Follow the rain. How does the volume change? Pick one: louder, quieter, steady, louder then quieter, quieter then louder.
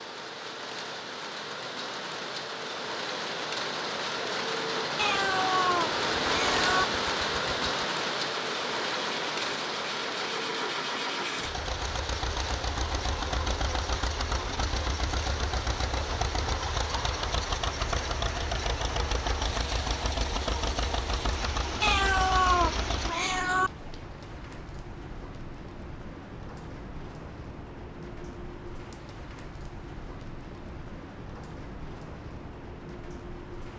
quieter.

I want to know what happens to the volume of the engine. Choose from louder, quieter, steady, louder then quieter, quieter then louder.
steady.